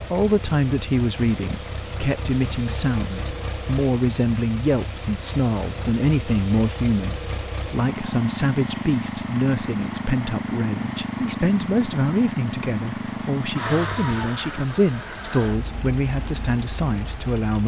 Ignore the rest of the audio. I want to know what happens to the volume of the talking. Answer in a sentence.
The volume of the talking stays about the same.